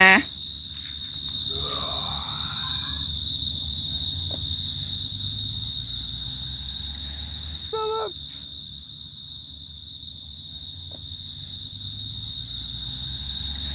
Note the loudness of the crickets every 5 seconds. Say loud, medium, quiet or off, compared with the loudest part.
loud, medium, medium.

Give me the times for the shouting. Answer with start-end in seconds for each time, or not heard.
1.5-3.1, 7.7-8.2.